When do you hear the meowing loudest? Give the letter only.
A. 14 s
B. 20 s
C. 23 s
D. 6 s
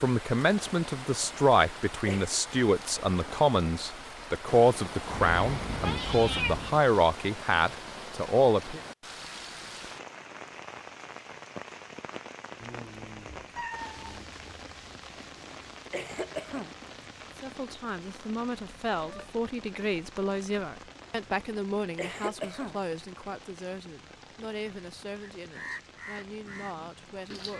D.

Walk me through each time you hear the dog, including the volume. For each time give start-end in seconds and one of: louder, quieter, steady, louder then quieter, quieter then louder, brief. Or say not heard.
not heard.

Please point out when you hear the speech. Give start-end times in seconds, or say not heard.
0.0-8.8, 17.4-27.5.